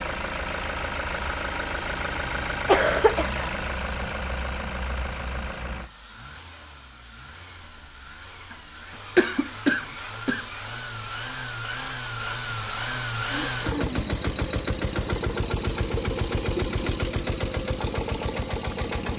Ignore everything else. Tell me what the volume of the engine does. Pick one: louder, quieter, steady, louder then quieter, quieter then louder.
quieter then louder.